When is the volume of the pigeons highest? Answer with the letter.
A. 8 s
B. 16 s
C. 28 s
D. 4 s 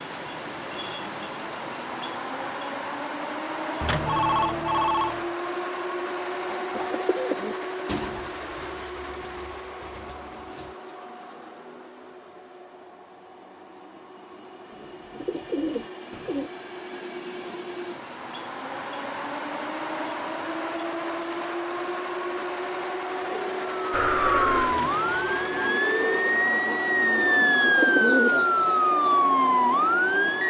C.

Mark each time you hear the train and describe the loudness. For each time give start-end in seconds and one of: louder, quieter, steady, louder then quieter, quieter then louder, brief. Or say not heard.
0.0-30.4 quieter then louder.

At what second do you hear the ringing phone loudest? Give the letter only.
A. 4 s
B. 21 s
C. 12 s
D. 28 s
A.